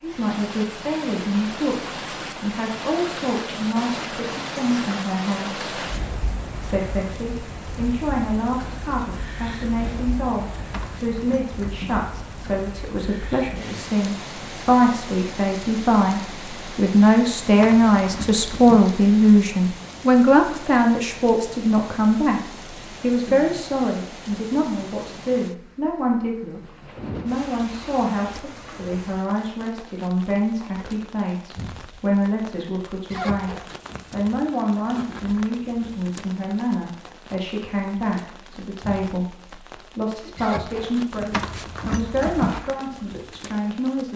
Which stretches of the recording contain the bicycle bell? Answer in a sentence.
The bicycle bell can't be heard in this clip.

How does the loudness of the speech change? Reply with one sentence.
The volume of the speech goes up, then down.